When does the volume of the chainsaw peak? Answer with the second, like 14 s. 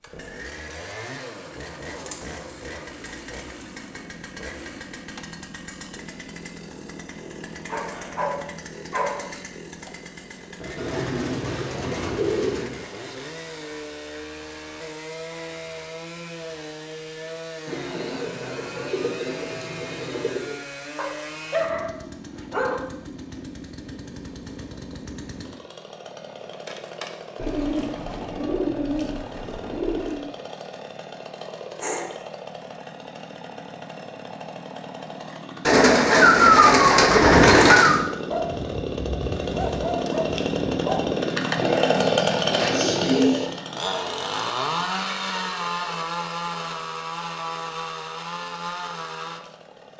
42 s.